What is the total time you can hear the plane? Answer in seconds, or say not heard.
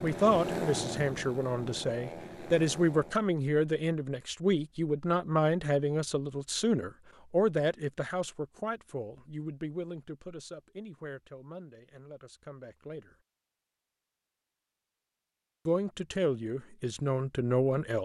3 s.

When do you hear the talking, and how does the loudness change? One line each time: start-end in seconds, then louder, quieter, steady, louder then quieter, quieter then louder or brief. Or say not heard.
0.0-13.2 quieter
15.7-18.0 brief.